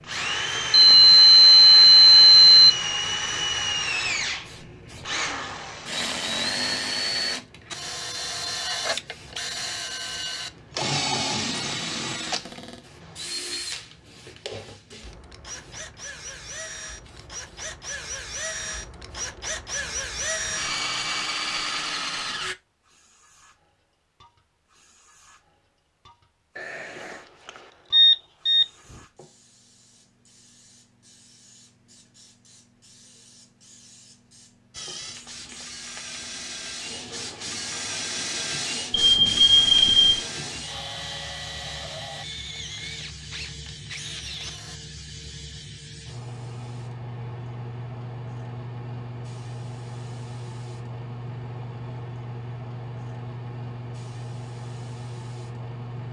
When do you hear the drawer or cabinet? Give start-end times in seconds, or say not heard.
11.4-12.8.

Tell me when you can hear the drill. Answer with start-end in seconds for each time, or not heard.
0.0-22.6, 34.7-44.8.